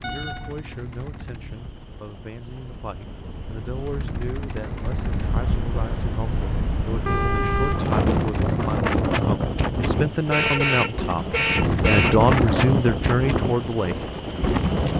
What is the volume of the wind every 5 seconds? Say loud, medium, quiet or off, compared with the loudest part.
quiet, loud, loud.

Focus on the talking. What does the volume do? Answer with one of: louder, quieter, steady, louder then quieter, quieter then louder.
louder.